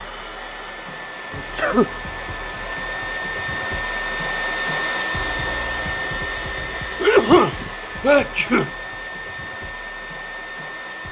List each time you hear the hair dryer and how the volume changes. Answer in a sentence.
You can hear the hair dryer from 0.0 to 11.0 s, getting louder then quieter.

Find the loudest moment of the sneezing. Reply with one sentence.
The loudest moment of the sneezing is at 7 seconds.